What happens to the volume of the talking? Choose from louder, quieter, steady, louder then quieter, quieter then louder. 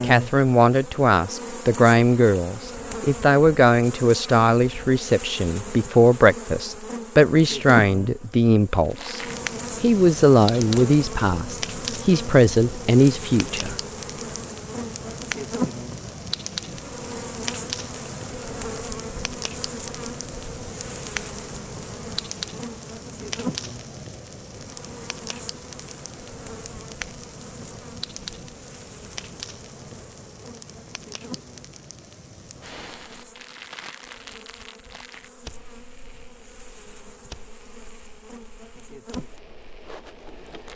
steady.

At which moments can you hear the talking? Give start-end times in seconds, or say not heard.
0.0-9.2, 9.8-13.8.